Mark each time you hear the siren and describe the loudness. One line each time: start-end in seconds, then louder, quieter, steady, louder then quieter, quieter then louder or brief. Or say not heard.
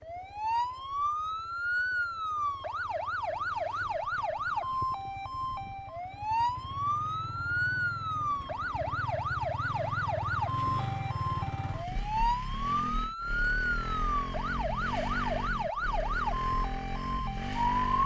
0.0-18.0 steady.